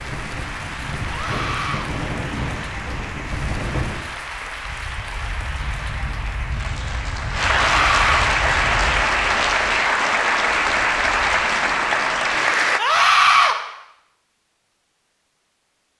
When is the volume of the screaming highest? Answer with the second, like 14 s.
13 s.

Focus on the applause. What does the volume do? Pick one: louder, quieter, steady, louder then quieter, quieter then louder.
louder.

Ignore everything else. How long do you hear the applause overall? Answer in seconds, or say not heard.
13 s.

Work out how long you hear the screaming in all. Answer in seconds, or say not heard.
2 s.